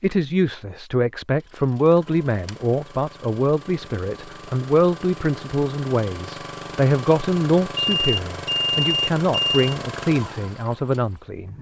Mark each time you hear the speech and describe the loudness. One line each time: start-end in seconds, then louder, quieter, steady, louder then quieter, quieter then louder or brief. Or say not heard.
0.0-11.5 steady.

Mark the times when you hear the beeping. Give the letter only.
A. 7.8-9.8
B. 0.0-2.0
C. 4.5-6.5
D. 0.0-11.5
A.